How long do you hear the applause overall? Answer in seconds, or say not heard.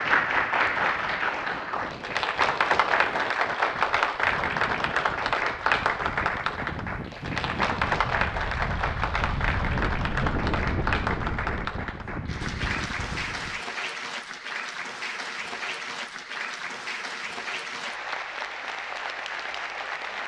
20 s.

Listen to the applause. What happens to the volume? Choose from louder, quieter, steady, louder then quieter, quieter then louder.
quieter.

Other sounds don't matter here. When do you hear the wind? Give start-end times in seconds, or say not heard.
0.0-13.6.